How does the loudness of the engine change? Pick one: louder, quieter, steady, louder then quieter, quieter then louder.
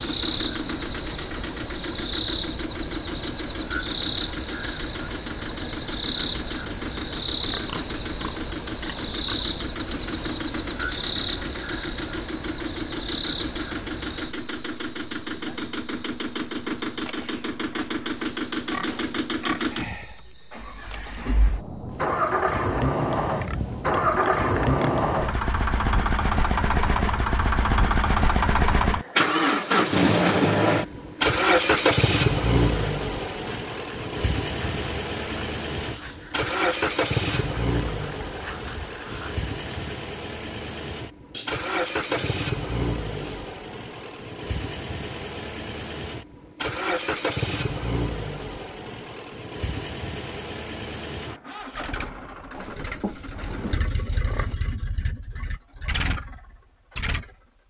louder then quieter.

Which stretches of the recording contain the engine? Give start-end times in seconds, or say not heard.
0.0-57.6.